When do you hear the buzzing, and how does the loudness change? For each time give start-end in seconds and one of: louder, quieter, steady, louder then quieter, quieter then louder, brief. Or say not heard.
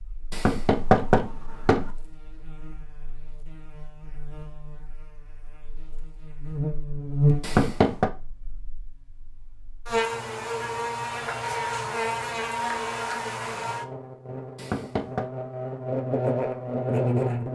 0.0-17.5 louder.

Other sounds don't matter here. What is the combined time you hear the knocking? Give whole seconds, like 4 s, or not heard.
3 s.